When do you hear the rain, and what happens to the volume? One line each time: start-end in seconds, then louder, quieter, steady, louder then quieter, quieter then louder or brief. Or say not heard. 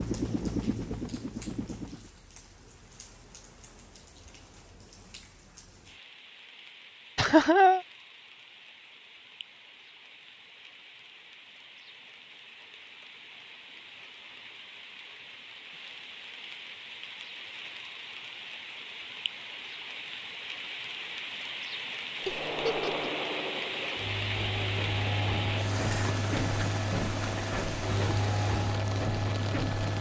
0.0-29.9 louder.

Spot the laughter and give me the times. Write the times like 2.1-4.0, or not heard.
7.2-7.8, 22.2-23.1.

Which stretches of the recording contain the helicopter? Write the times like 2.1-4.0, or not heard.
0.0-2.1, 22.2-29.9.